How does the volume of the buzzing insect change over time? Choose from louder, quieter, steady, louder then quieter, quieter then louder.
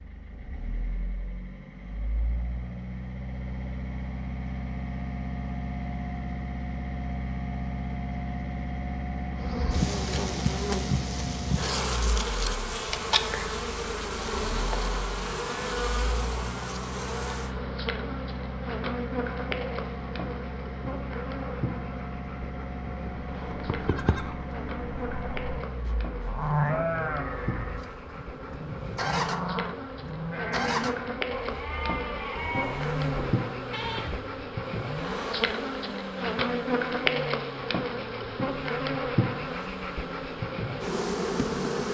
quieter then louder.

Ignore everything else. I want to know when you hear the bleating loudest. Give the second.
27 s.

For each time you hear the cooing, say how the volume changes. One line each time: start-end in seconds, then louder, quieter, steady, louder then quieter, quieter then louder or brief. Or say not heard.
not heard.